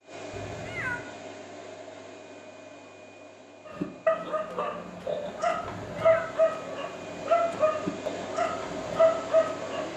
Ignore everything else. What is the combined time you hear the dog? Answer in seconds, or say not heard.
6 s.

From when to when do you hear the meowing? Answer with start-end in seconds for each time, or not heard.
0.3-1.0, 5.6-6.3.